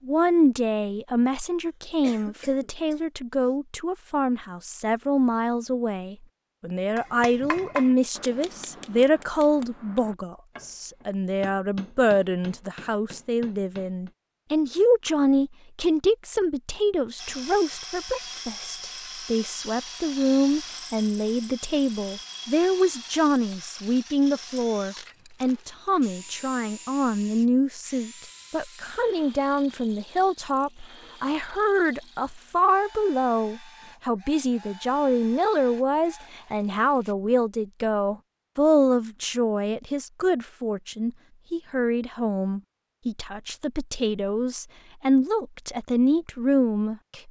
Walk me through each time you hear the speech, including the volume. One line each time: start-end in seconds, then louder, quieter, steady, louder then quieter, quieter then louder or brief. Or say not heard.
0.1-47.2 steady.